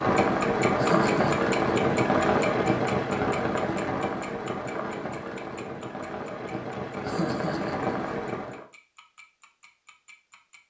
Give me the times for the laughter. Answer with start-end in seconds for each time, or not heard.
0.8-1.4, 7.0-8.0.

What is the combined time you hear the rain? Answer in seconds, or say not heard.
9 s.